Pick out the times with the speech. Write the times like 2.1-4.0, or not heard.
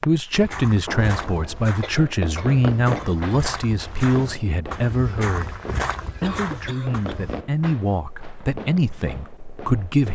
0.1-5.6, 6.2-10.1.